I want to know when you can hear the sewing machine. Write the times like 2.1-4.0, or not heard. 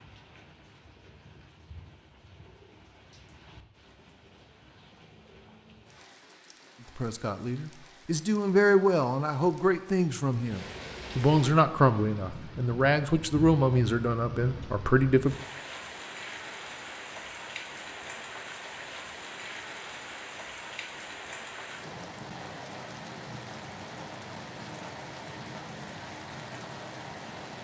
not heard.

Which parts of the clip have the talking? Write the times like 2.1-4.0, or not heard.
7.0-15.3.